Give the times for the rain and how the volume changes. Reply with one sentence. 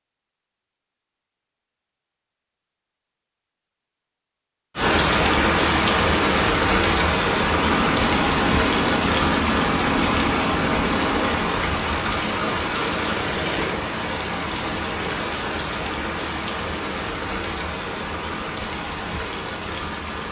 The rain can be heard from 4.8 to 20.2 s, getting quieter.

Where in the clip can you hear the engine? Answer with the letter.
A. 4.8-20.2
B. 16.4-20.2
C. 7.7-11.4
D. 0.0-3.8
C.